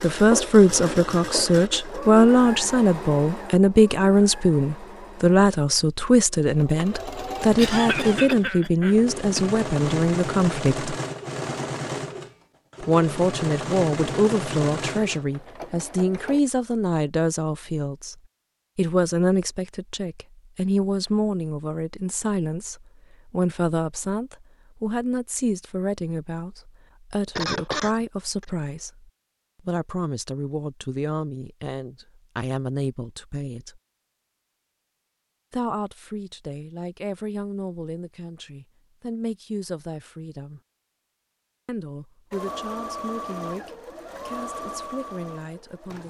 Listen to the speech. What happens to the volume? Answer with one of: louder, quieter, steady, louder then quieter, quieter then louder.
quieter.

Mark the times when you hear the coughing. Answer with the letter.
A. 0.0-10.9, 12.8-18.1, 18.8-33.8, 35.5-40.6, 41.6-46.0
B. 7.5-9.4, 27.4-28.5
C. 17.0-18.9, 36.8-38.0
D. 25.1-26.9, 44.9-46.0
B.